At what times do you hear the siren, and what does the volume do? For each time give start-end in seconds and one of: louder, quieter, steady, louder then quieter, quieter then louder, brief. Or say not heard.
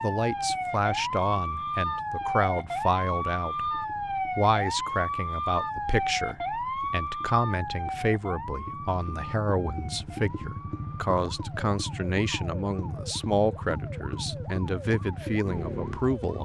0.0-16.4 quieter.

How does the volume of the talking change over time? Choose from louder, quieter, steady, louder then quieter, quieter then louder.
steady.